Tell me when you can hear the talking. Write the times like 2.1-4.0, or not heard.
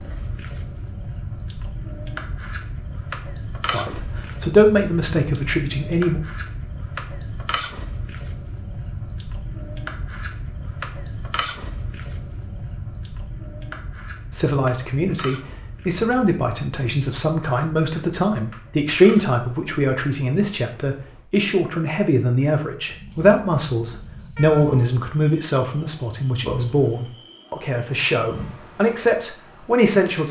3.6-6.2, 14.3-30.2.